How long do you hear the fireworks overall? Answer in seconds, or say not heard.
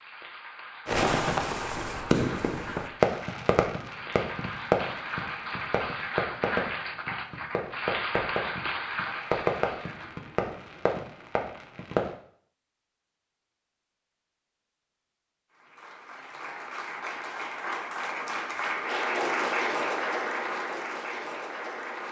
11 s.